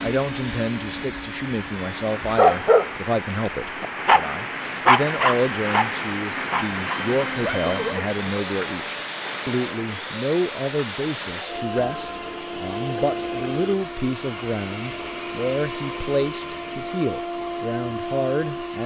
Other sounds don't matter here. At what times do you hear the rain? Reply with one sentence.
The rain can be heard from 0.0 to 11.4 s.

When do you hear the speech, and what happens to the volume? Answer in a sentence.
You can hear the speech from 0.0 to 18.8 s, at a steady volume.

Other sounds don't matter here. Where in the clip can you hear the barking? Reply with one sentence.
The barking can be heard from 2.4 to 8.3 s.